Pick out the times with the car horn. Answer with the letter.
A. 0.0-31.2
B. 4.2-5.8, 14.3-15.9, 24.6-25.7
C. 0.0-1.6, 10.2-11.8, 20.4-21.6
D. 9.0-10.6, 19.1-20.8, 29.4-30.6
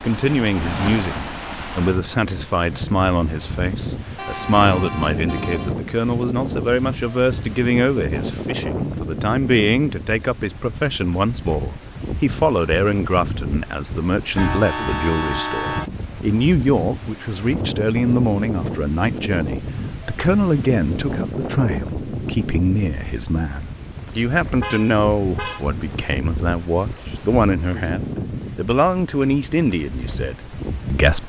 B.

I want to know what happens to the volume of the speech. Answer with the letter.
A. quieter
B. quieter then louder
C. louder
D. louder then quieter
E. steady
E.